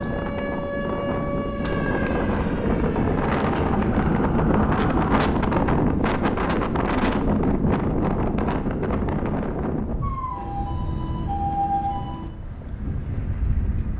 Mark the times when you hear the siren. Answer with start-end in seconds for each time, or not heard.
0.0-5.2, 10.0-12.3.